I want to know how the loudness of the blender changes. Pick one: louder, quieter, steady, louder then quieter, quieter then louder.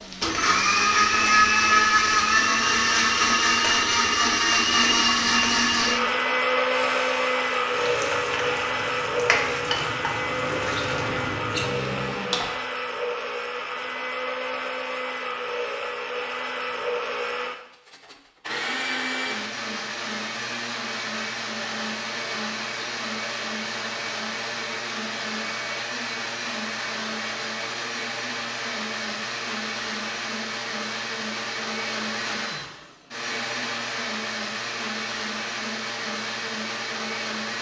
quieter.